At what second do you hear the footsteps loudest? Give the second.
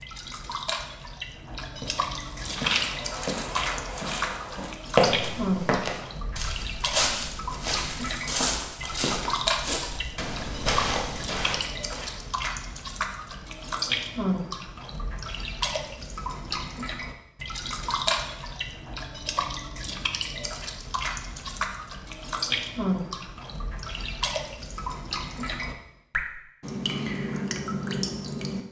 5 s.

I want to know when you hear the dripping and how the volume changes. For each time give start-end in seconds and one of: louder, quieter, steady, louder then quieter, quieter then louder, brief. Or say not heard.
0.0-28.6 steady.